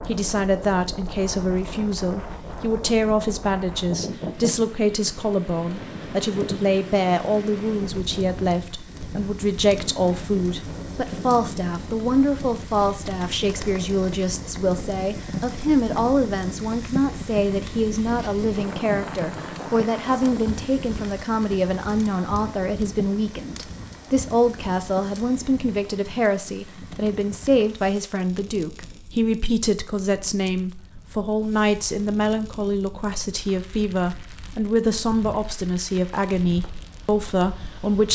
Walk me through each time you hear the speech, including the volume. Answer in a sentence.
The speech can be heard from 0.0 to 38.0 s, at a steady volume.